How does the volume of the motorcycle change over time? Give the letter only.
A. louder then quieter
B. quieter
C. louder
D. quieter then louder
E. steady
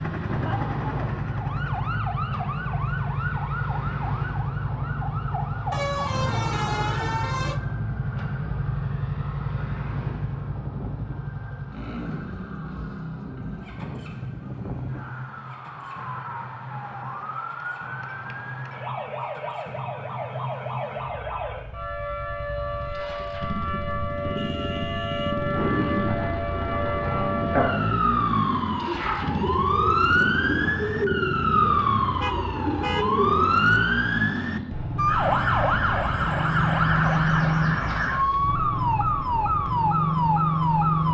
D.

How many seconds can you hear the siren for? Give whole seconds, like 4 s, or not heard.
41 s.